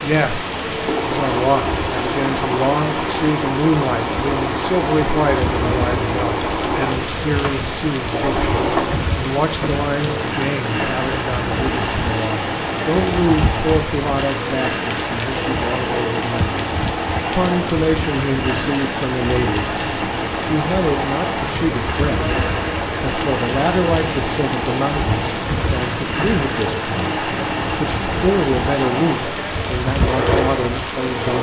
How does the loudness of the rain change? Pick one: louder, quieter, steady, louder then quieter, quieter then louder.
steady.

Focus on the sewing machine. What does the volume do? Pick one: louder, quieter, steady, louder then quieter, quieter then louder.
steady.